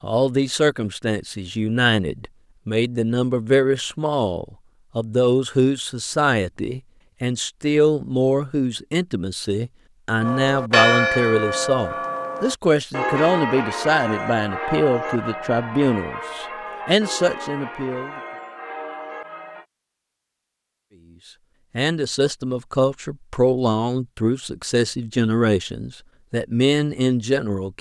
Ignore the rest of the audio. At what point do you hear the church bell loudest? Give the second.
11 s.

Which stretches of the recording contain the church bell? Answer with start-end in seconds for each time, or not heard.
10.2-19.6.